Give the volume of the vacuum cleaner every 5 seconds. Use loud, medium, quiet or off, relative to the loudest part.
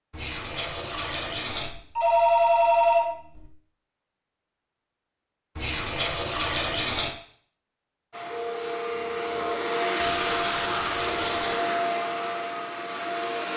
off, loud, loud.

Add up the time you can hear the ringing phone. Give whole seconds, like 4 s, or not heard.
3 s.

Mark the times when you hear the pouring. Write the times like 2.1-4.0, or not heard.
0.1-1.7, 5.5-7.1, 10.2-11.6.